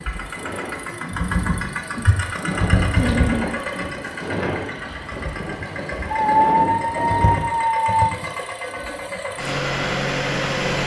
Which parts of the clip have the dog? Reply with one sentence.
The dog can be heard from 3.0 to 3.5 s and from 6.1 to 8.2 s.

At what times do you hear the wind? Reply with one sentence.
You can hear the wind from 0.0 to 7.6 s.